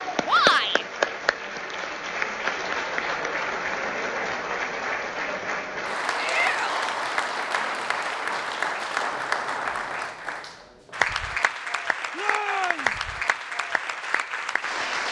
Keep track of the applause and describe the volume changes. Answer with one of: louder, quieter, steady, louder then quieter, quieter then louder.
steady.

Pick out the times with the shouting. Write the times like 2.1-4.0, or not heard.
0.2-0.8, 6.2-6.8, 12.2-12.9.